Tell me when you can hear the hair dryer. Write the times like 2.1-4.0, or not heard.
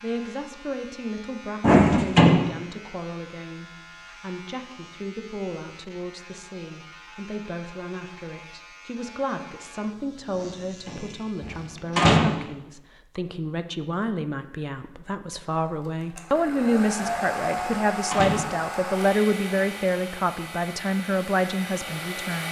15.6-22.4.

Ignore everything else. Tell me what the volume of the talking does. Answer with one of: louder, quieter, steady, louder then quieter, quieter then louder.
louder.